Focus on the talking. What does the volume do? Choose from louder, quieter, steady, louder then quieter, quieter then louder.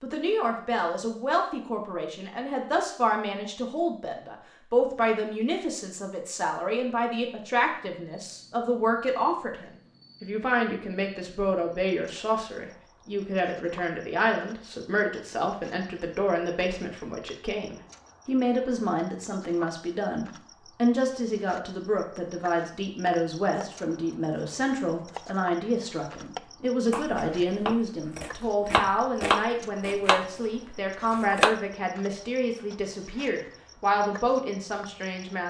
steady.